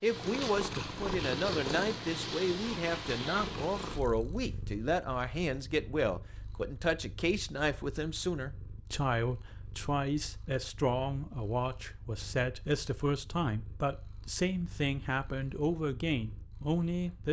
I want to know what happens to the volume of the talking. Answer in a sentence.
The loudness of the talking stays about the same.